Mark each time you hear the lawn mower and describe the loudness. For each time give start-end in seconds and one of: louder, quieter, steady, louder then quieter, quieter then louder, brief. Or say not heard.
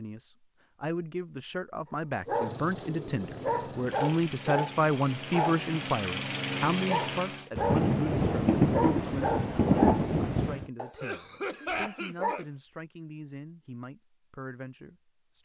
2.2-7.5 louder.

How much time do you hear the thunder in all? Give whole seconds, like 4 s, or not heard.
3 s.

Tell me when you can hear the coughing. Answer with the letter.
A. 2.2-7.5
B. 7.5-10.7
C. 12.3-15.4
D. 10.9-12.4
D.